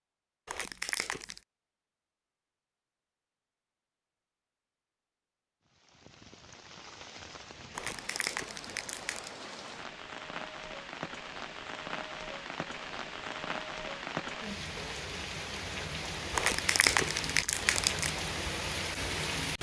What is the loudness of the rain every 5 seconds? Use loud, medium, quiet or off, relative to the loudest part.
off, medium, loud, loud.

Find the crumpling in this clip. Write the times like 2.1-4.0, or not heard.
0.5-1.4, 7.7-9.3, 16.3-18.1.